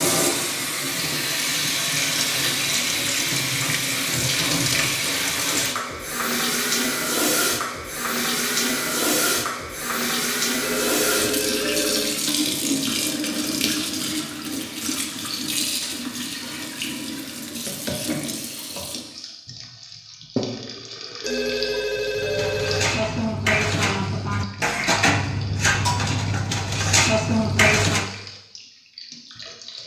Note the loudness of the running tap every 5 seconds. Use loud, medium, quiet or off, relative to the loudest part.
loud, loud, loud, medium, medium, quiet.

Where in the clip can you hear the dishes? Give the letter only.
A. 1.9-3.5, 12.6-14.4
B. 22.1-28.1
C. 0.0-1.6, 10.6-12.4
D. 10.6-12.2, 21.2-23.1
B.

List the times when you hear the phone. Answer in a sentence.
You can hear the phone from 10.6 to 12.2 s and from 21.2 to 23.1 s.